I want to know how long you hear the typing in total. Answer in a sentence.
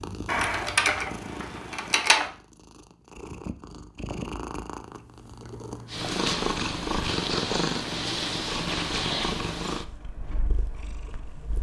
You can hear the typing for 2 seconds altogether.